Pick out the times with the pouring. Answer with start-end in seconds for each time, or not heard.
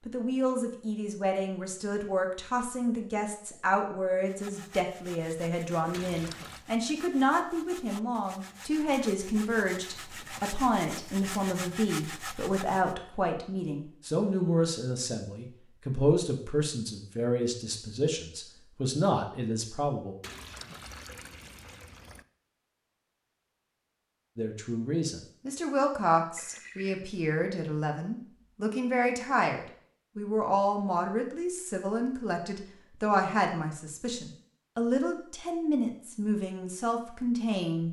5.9-6.7, 20.2-22.2, 26.4-27.1.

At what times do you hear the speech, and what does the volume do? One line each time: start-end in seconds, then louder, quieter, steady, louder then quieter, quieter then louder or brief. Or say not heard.
0.1-20.1 steady
24.4-37.8 steady.